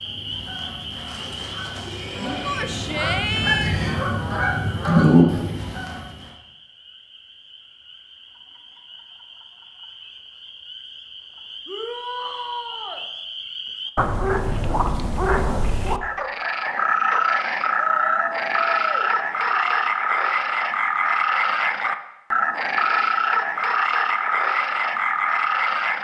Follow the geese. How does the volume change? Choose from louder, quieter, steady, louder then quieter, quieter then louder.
louder.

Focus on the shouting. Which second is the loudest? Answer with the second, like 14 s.
3 s.